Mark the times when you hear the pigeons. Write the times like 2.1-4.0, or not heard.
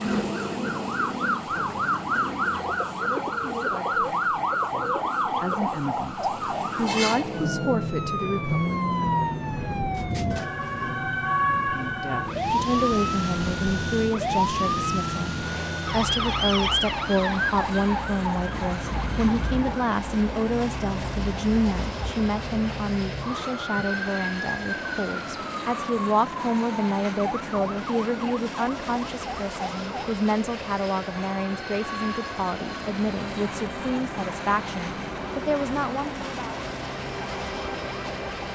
0.0-5.8.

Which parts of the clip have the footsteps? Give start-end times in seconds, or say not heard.
not heard.